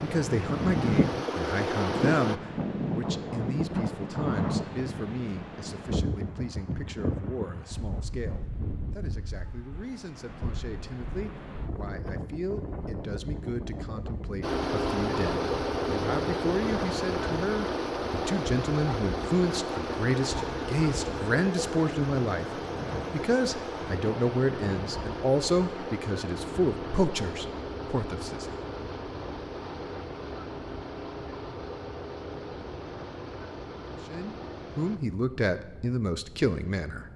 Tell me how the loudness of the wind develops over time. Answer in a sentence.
The loudness of the wind goes down.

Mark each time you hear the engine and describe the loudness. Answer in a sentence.
You can hear the engine briefly from 0.0 to 2.4 s; and from 14.4 to 35.0 s, getting quieter.